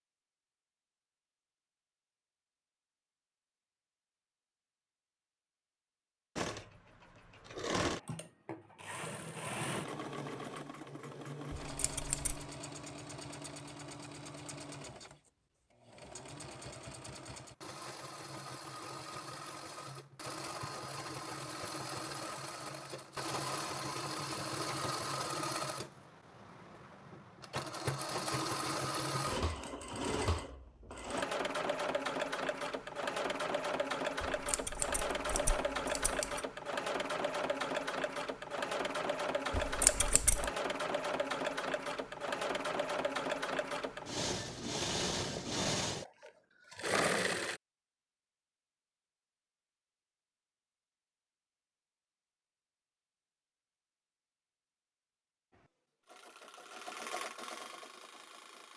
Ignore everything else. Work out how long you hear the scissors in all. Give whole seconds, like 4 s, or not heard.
4 s.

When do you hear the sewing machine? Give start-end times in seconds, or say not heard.
6.3-47.6, 55.5-58.7.